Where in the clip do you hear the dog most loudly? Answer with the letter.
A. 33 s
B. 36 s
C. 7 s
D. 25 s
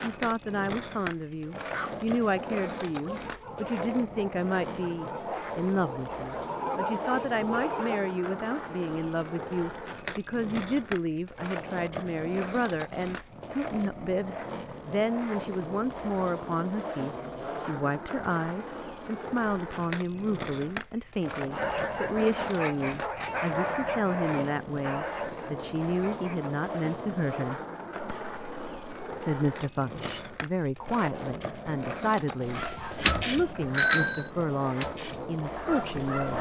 A.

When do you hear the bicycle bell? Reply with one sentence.
You can hear the bicycle bell from 32.5 to 34.3 s.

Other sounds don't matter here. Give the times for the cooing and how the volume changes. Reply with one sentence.
You can't hear the cooing here.